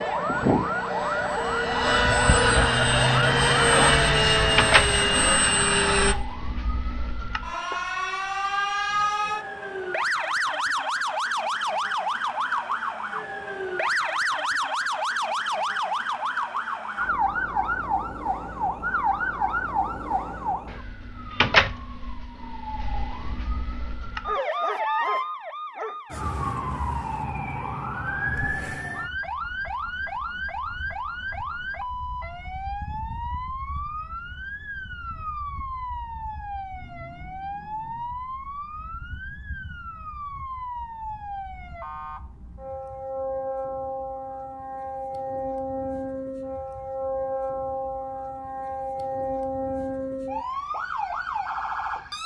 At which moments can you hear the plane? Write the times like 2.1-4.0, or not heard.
0.0-6.2.